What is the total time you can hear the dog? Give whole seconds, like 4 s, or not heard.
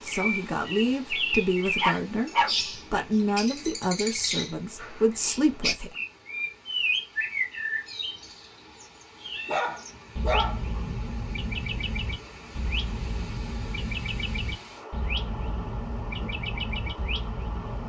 3 s.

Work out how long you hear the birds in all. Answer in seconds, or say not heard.
18 s.